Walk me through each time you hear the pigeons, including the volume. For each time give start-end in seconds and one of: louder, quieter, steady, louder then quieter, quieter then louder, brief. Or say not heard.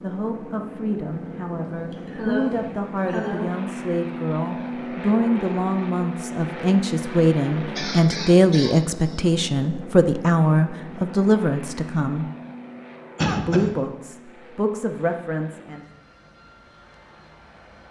not heard.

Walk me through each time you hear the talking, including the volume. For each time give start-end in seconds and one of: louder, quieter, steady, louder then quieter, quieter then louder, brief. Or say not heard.
0.0-12.2 louder
13.2-15.8 brief.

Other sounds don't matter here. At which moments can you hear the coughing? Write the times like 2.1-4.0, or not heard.
1.9-3.5, 7.8-9.2, 13.2-13.8.